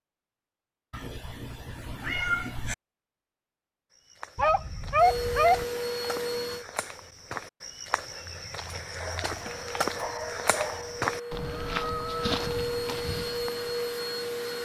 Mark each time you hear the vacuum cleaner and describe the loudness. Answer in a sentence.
The vacuum cleaner can be heard briefly from 5.0 to 6.7 s; and from 9.3 to 14.6 s, getting louder.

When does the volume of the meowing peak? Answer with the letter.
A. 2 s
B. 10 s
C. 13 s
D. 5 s
A.